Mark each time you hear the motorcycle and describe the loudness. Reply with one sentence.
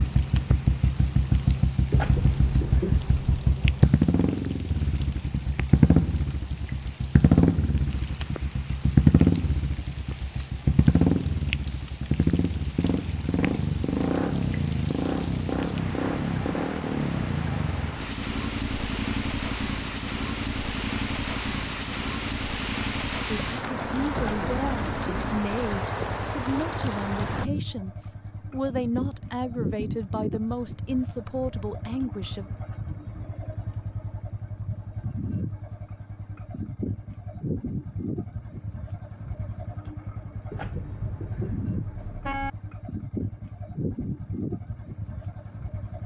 You can hear the motorcycle from 0.0 to 46.0 s, getting quieter.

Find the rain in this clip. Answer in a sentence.
The rain can be heard from 0.0 to 27.4 s.